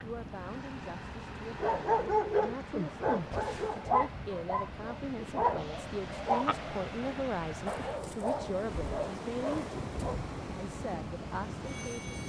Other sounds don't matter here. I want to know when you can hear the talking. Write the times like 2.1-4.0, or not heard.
0.0-9.6, 10.6-12.2.